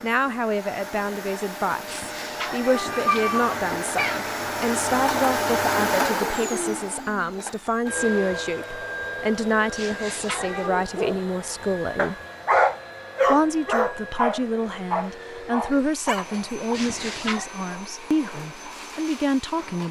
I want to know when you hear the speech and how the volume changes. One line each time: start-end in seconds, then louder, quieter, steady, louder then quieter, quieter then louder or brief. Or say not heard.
0.0-12.2 steady
13.2-19.8 steady.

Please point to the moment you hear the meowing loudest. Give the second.
3 s.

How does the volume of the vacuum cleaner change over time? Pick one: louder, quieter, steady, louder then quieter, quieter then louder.
louder then quieter.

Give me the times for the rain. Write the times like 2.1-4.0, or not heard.
not heard.